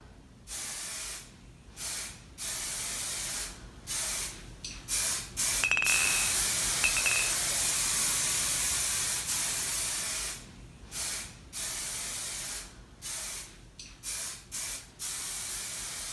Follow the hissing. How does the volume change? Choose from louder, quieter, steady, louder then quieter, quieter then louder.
louder then quieter.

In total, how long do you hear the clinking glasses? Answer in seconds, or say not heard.
2 s.